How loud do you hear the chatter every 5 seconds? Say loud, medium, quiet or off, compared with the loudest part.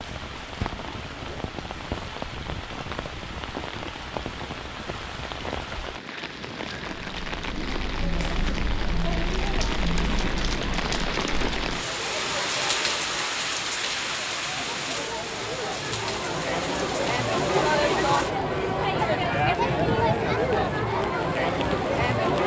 off, medium, quiet, loud, loud.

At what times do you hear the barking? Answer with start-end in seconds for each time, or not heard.
not heard.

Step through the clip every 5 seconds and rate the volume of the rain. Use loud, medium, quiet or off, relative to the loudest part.
medium, medium, loud, medium, medium.